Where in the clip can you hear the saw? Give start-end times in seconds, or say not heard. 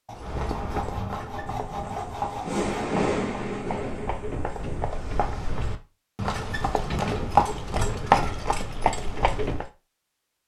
0.1-2.9.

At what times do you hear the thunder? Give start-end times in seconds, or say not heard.
1.4-5.2.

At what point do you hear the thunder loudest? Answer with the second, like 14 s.
3 s.